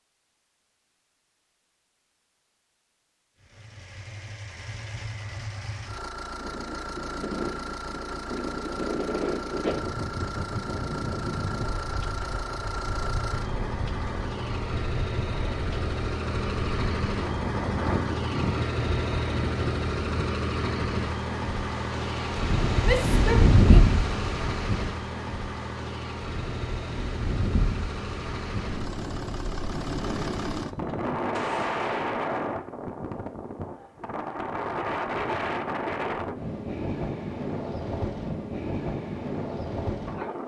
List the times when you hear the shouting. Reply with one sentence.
The shouting can be heard from 22.8 to 23.8 s.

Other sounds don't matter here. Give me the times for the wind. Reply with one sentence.
The wind can be heard from 6.2 to 40.4 s.